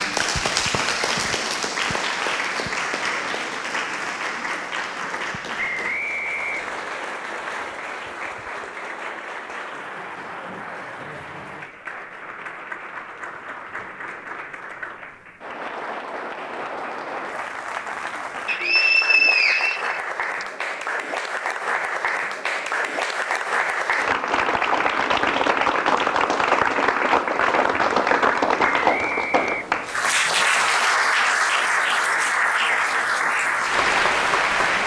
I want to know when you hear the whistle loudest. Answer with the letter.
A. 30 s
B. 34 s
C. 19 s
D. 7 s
C.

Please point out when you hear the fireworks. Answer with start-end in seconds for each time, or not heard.
not heard.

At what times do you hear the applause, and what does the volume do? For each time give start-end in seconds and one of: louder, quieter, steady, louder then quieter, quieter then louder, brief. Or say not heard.
0.0-34.8 quieter then louder.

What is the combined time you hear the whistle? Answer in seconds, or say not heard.
5 s.